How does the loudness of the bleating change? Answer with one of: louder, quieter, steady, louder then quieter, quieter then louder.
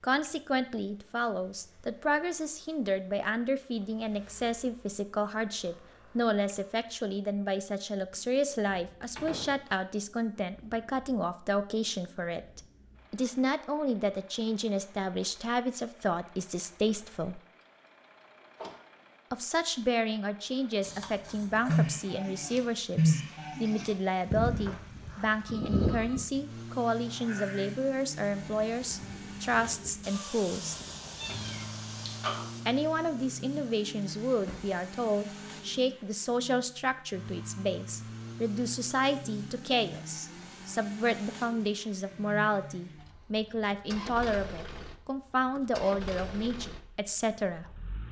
quieter.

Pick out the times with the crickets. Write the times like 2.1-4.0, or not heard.
not heard.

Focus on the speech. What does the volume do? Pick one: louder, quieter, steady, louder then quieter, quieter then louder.
steady.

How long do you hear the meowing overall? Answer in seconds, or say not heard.
4 s.